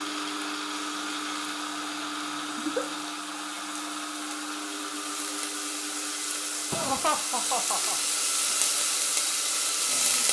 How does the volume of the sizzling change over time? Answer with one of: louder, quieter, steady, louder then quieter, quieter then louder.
louder.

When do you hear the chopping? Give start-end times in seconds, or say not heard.
not heard.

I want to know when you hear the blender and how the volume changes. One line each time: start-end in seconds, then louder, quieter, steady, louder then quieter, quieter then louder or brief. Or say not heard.
0.0-10.2 quieter.